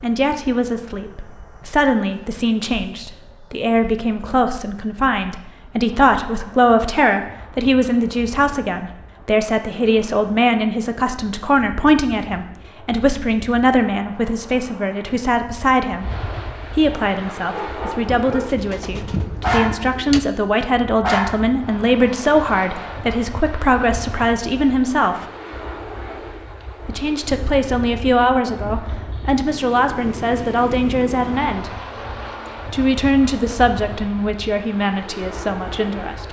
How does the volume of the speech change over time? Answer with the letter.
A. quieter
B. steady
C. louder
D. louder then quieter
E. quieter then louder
B.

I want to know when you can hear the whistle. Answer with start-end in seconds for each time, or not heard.
not heard.